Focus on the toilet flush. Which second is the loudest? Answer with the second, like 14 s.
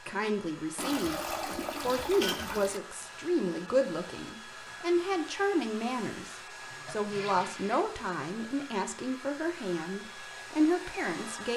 2 s.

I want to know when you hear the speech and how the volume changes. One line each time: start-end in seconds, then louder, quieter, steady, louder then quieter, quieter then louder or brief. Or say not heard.
0.0-11.5 steady.